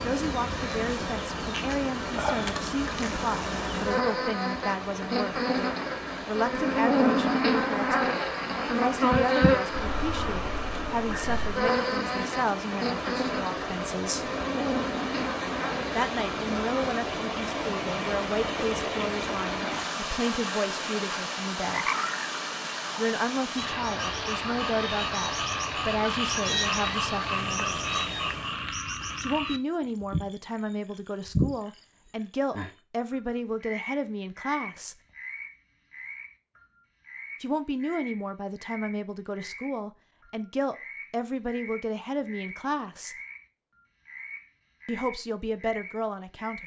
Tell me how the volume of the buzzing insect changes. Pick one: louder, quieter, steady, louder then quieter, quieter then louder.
louder then quieter.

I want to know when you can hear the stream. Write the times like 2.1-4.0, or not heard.
0.0-28.8.